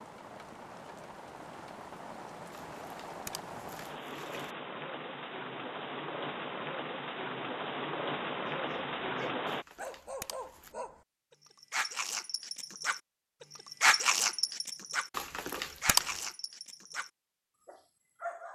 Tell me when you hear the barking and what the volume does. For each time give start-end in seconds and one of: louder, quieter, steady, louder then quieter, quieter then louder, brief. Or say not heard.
8.4-18.5 louder then quieter.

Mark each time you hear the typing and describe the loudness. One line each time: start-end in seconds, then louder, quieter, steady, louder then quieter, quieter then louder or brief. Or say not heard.
not heard.